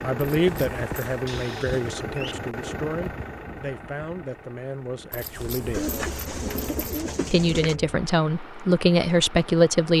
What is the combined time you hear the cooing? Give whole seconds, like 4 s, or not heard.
3 s.